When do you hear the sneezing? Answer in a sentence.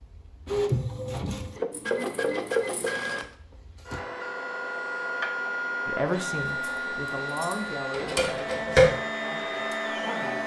You can't hear the sneezing here.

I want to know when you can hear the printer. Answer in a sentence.
The printer can be heard from 0.0 to 10.4 s.